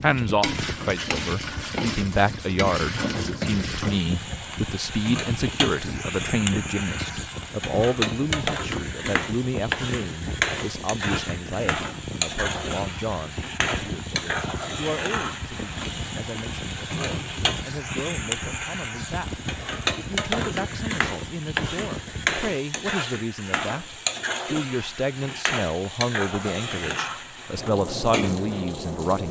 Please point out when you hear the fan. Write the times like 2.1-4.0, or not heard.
0.0-22.5.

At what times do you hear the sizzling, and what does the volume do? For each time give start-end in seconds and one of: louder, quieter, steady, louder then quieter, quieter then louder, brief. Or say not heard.
0.0-29.2 steady.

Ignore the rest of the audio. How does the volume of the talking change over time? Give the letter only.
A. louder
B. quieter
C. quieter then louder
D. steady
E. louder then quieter
C.